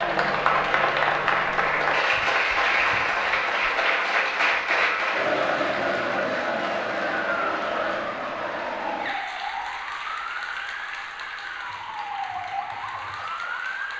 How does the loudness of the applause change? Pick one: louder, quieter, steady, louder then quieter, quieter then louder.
quieter.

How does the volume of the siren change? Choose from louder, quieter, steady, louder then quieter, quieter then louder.
steady.